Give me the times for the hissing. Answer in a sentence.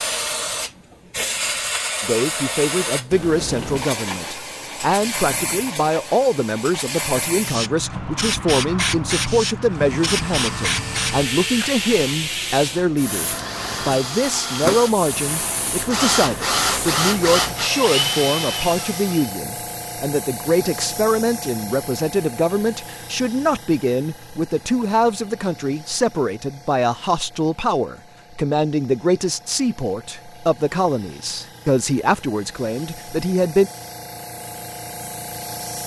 The hissing can be heard from 0.0 to 35.8 s.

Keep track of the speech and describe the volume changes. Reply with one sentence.
The loudness of the speech stays about the same.